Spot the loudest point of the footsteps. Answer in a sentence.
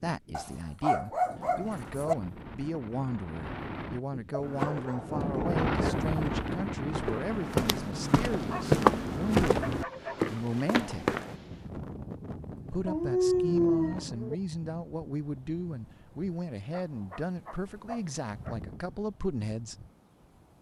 The loudest moment of the footsteps is at 9 seconds.